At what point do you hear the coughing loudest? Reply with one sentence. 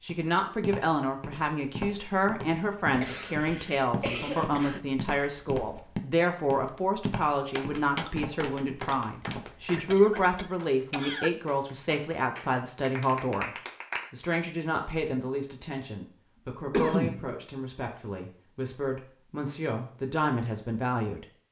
The loudest moment of the coughing is at 17 seconds.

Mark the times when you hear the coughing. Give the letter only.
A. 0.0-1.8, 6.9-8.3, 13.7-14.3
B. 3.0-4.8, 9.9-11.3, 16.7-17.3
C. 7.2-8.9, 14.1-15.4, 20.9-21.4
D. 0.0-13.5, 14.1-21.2
B.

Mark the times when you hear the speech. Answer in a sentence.
You can hear the speech from 0.0 to 13.5 s and from 14.1 to 21.2 s.